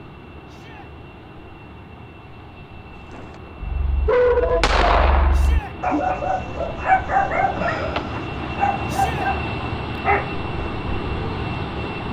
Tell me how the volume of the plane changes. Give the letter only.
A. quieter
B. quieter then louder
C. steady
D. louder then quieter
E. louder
E.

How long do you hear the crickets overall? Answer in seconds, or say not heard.
not heard.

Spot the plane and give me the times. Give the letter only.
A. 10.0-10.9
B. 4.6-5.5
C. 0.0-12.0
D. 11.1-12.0
C.